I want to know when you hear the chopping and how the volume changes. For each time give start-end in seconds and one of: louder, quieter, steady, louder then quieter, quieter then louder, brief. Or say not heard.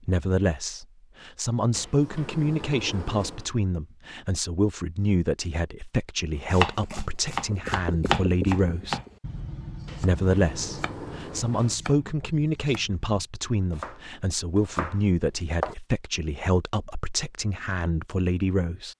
6.5-15.8 quieter then louder.